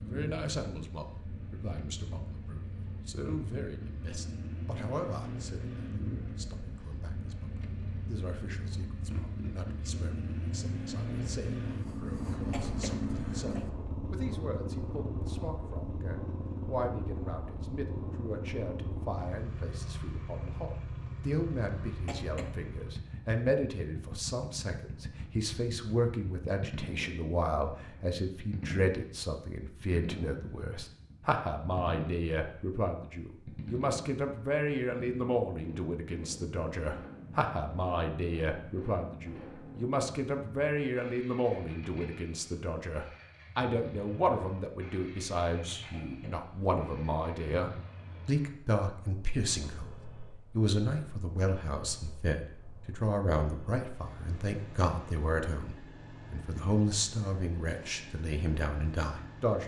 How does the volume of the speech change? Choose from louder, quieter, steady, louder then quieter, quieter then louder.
louder.